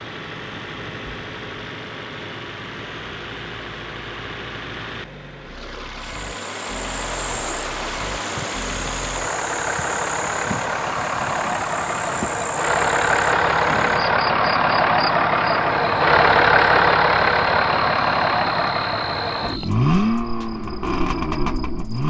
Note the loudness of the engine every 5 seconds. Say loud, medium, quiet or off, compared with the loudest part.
quiet, quiet, loud, loud, medium.